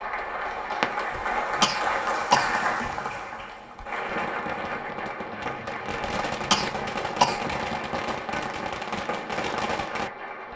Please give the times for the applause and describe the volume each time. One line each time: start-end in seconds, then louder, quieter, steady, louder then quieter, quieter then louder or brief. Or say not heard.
0.0-10.5 quieter.